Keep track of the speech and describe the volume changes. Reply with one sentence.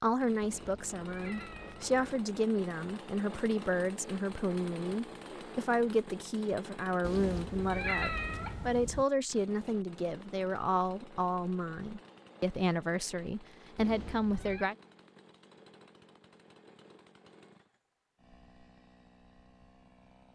The volume of the speech stays about the same.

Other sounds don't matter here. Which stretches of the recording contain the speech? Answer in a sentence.
You can hear the speech from 0.0 to 14.8 s.